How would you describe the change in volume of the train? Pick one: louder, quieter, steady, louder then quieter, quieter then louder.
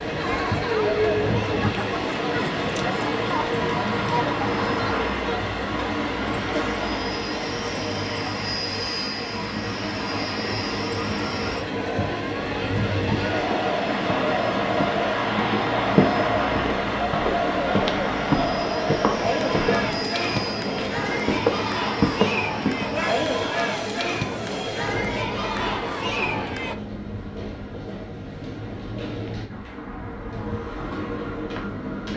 quieter.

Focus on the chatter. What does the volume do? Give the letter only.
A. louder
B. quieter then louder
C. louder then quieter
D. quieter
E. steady
B.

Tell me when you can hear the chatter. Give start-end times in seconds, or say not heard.
0.0-26.8.